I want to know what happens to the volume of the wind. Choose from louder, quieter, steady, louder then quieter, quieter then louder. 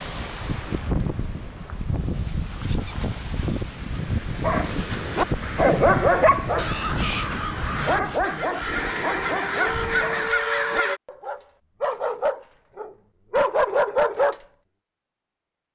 quieter.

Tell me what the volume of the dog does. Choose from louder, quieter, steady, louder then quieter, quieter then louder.
quieter then louder.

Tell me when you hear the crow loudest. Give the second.
10 s.